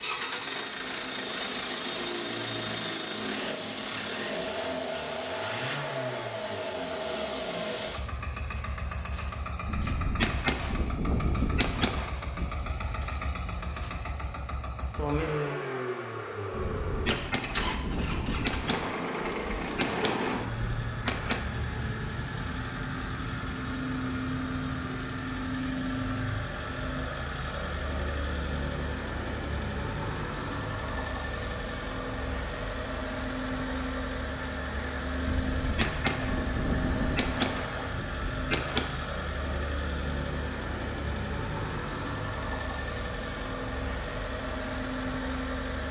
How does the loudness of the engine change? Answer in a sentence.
The loudness of the engine stays about the same.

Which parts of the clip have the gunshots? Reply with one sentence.
You can hear the gunshots from 9.7 to 12.8 s, from 16.5 to 21.4 s and from 35.2 to 38.9 s.